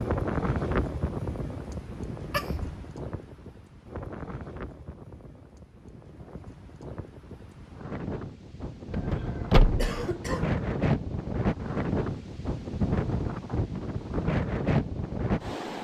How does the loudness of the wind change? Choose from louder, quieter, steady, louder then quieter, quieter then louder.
quieter then louder.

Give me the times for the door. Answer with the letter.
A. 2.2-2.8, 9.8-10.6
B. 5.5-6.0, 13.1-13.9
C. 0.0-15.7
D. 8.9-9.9
D.